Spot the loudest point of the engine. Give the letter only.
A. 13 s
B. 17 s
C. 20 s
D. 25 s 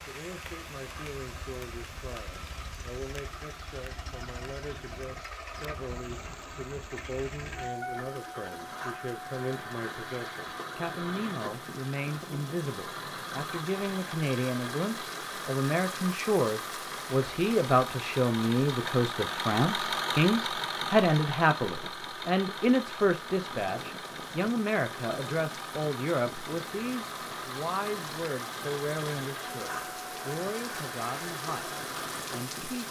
C.